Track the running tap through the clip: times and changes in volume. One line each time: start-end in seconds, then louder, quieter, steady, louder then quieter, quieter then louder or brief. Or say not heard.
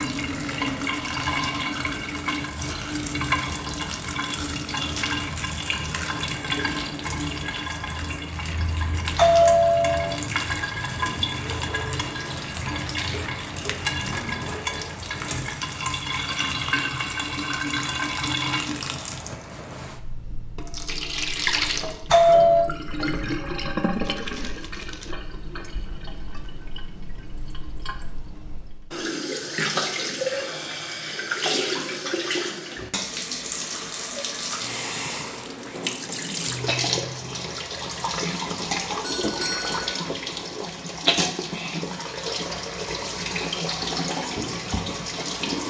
0.0-45.6 steady.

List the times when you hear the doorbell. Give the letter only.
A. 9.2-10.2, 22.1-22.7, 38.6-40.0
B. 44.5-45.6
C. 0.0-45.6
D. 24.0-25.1
A.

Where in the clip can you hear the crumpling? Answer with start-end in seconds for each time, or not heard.
24.0-25.1.